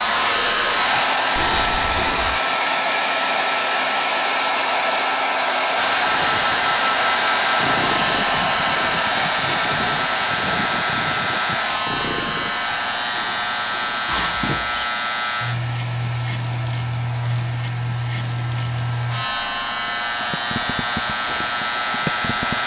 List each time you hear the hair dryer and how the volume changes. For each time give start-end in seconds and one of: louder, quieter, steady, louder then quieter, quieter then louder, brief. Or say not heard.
0.0-22.6 quieter.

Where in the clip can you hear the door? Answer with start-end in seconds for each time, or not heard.
1.4-2.4, 14.1-14.9.